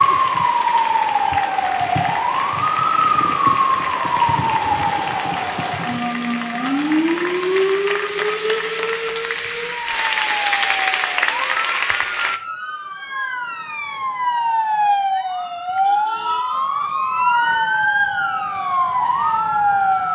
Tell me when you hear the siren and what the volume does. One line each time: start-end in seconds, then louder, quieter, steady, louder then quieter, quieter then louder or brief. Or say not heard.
0.0-20.0 quieter then louder.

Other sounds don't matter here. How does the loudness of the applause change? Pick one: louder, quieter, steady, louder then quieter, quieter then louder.
louder.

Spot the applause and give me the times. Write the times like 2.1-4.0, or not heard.
0.0-12.4.